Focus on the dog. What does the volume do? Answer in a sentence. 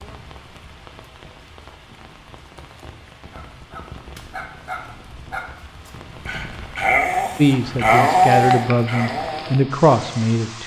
The volume of the dog goes up.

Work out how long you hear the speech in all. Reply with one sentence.
The speech can be heard for 3 seconds in total.